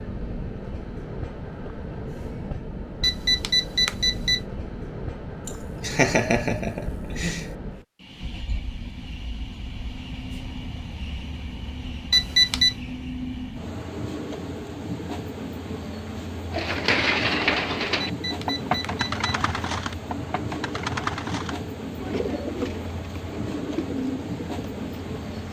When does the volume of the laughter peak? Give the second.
6 s.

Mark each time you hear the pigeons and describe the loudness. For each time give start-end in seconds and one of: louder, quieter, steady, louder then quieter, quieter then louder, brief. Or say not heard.
16.5-25.4 quieter.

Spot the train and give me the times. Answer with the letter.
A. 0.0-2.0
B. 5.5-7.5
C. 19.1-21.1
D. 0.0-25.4
D.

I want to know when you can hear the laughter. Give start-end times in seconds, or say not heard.
5.5-7.5.